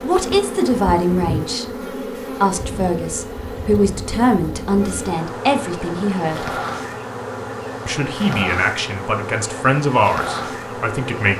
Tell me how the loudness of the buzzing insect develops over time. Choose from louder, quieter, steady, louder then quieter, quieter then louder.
steady.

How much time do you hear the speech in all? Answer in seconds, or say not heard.
9 s.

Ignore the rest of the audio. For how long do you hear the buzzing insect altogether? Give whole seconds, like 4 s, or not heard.
11 s.